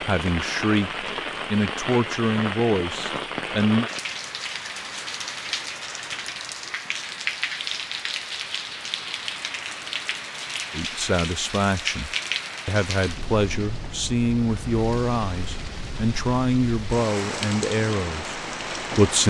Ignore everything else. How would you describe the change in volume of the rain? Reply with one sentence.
The volume of the rain stays about the same.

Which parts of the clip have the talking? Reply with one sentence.
You can hear the talking from 0.0 to 3.9 s and from 10.7 to 19.2 s.